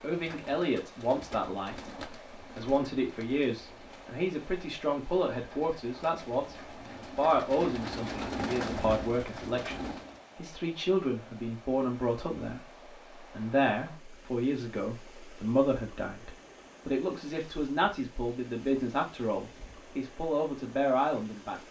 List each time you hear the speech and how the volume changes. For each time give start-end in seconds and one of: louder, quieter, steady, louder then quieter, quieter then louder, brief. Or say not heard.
0.0-6.5 quieter then louder
7.2-21.6 steady.